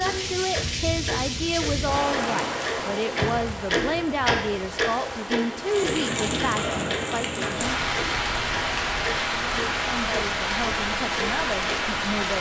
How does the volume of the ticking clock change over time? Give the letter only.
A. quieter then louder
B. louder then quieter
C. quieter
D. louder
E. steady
B.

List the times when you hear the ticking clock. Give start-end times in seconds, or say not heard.
0.0-11.8.